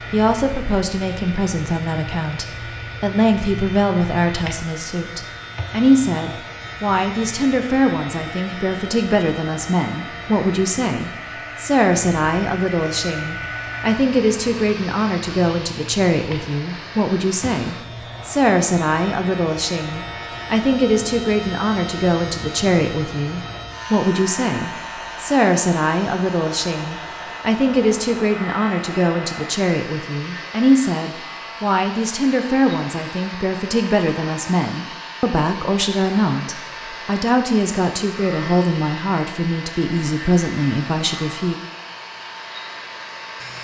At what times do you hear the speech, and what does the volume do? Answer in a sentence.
The speech can be heard from 0.1 to 41.5 s, at a steady volume.